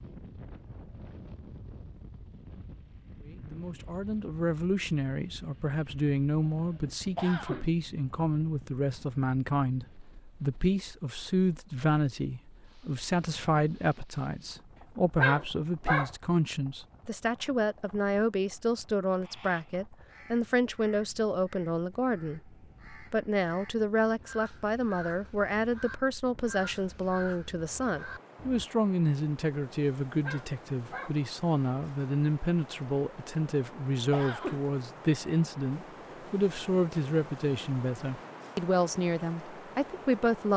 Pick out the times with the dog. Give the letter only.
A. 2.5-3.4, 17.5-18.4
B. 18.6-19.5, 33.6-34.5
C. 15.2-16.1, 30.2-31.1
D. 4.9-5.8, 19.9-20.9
C.